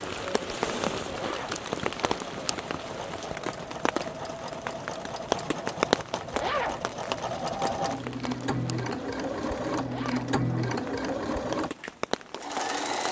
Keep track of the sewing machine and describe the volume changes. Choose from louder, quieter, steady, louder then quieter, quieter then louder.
louder.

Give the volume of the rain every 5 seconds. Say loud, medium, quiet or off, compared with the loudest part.
loud, loud, medium.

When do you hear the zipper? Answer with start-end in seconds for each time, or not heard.
1.1-1.6, 6.3-6.8, 9.8-10.3.